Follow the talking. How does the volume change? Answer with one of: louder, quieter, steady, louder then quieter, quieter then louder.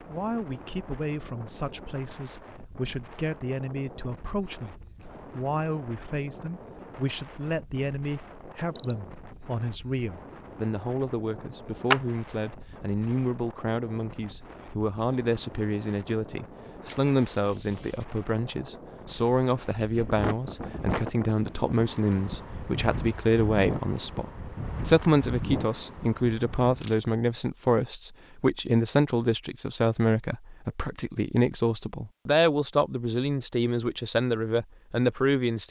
louder.